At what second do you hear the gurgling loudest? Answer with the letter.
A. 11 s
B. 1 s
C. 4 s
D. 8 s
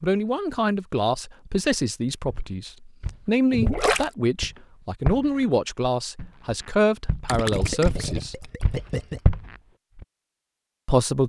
C.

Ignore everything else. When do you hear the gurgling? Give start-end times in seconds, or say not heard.
3.5-4.0, 7.2-9.2.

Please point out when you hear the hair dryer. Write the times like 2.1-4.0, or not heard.
not heard.